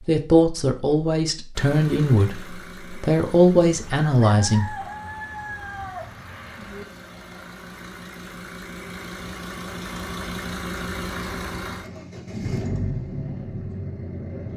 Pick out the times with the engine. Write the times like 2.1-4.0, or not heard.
1.6-14.5.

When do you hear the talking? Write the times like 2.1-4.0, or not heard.
0.1-4.8.